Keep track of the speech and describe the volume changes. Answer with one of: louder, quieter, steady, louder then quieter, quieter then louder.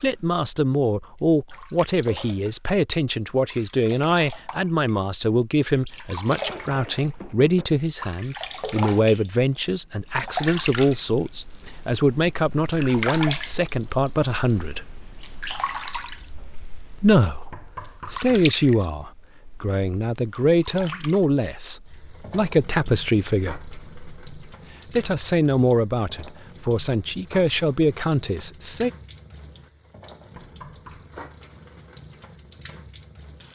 steady.